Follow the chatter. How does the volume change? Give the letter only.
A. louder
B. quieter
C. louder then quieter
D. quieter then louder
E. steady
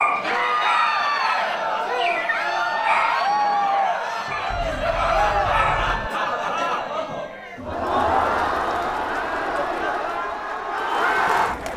E.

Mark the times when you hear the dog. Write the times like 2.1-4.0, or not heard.
0.0-6.2.